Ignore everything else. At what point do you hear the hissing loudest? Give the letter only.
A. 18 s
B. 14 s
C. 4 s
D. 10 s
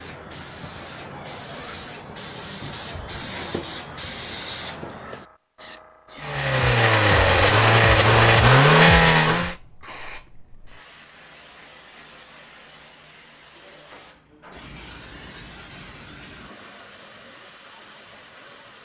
C.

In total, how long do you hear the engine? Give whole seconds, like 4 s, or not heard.
3 s.